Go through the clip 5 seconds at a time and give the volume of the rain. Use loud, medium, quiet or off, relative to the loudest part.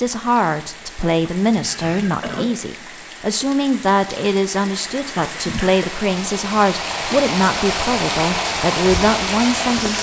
quiet, loud.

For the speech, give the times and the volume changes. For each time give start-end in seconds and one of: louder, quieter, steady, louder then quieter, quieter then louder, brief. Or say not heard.
0.0-9.9 steady.